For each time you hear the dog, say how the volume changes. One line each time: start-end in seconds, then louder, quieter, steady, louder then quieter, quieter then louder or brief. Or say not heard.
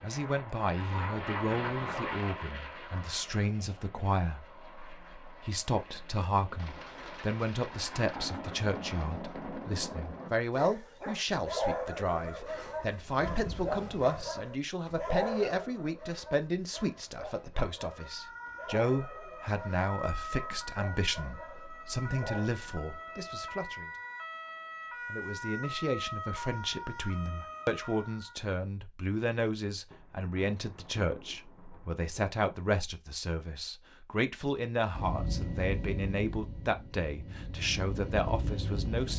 10.5-22.5 quieter.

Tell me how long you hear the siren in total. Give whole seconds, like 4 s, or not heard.
11 s.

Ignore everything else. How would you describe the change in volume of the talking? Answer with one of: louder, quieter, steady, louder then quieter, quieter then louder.
steady.